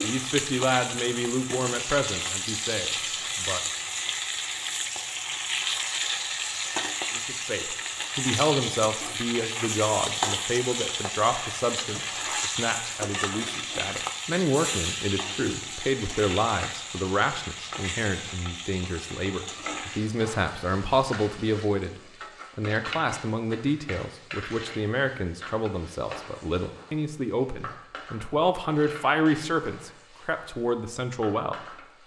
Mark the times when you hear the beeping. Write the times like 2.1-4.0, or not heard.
not heard.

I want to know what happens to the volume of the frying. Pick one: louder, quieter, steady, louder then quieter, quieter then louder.
quieter.